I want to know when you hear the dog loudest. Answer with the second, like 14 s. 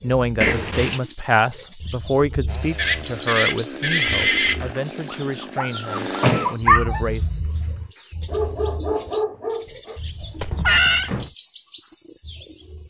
7 s.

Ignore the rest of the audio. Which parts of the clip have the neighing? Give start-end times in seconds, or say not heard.
2.8-4.6, 10.4-11.1.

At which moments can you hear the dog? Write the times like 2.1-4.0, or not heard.
4.5-10.0.